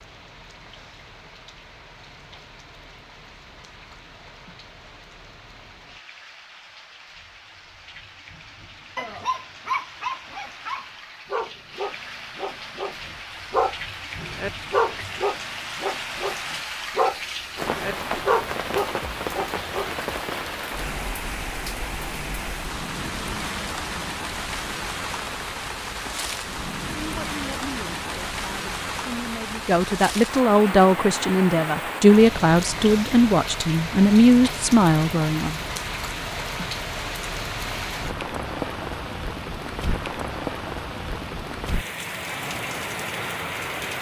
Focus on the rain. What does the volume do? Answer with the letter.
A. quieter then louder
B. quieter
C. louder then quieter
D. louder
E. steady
D.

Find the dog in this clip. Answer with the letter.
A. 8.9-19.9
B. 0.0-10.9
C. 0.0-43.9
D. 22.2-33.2
A.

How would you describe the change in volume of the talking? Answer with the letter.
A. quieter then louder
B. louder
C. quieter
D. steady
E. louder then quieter
B.